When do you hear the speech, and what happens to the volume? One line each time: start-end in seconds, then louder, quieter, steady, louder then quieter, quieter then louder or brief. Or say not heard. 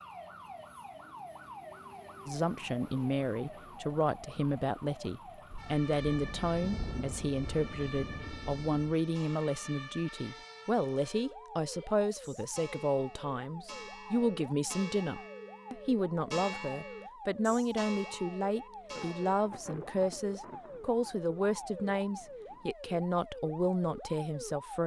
2.2-24.8 steady.